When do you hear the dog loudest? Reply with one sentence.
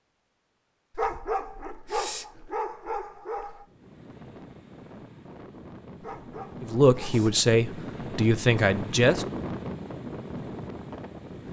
The loudest moment of the dog is at 1 second.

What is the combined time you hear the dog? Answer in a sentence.
You can hear the dog for 4 seconds altogether.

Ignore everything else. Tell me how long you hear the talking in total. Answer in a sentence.
You can hear the talking for 3 seconds altogether.